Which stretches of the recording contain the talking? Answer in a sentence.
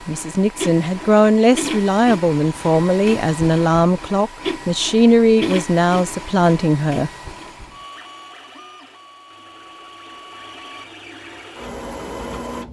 The talking can be heard from 0.1 to 7.1 s.